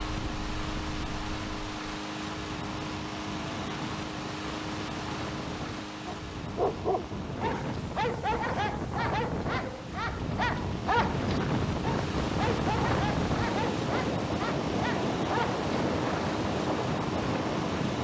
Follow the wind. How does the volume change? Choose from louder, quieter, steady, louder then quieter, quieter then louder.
louder.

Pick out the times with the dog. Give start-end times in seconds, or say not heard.
6.0-15.6.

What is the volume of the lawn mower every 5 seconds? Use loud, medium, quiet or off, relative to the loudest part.
loud, medium, loud, loud.